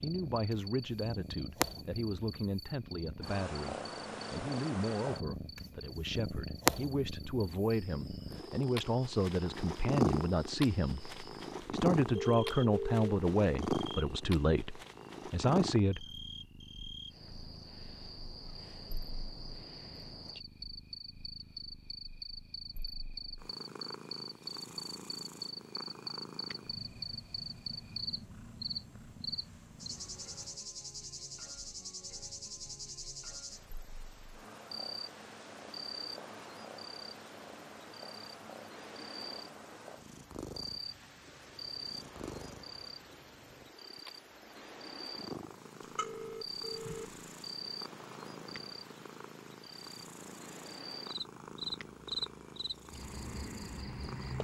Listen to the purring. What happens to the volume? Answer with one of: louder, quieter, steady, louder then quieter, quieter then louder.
quieter.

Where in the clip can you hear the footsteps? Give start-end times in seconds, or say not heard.
not heard.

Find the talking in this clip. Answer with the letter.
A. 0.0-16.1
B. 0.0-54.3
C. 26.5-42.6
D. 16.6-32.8
A.